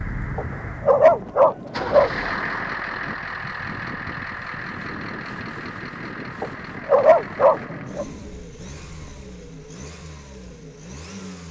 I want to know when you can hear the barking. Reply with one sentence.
The barking can be heard from 0.3 to 2.1 s and from 6.4 to 8.1 s.